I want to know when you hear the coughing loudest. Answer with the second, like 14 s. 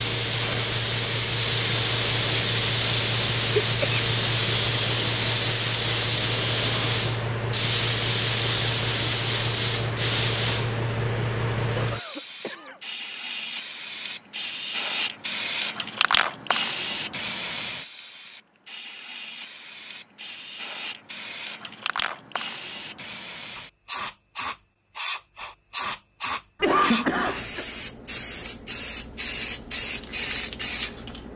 27 s.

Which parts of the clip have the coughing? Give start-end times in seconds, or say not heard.
3.6-4.0, 11.8-12.8, 26.6-27.6.